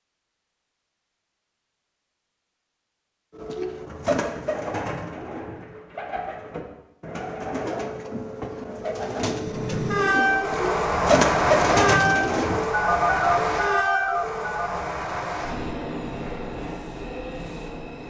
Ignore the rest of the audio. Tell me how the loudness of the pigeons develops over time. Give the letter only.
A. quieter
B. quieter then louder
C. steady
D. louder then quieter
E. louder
B.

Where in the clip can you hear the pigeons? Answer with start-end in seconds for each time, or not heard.
3.4-12.7.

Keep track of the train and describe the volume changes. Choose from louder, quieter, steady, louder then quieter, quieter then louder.
quieter.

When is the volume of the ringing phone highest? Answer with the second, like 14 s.
13 s.